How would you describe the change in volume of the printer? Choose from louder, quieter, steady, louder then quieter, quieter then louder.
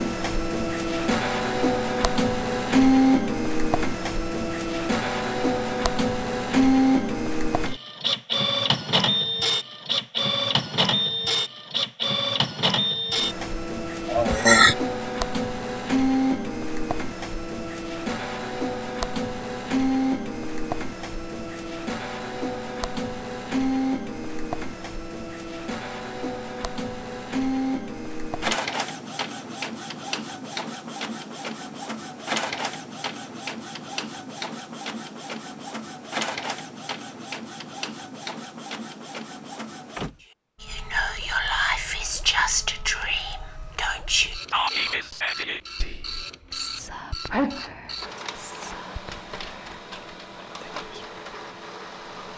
quieter.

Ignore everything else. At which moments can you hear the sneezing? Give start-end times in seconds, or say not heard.
14.1-14.8, 47.3-47.8.